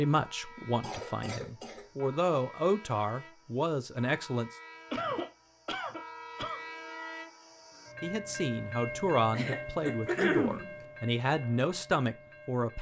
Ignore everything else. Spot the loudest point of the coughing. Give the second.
10 s.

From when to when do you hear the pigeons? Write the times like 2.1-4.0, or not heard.
not heard.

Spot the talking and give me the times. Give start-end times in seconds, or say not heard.
0.0-4.5, 8.0-12.7.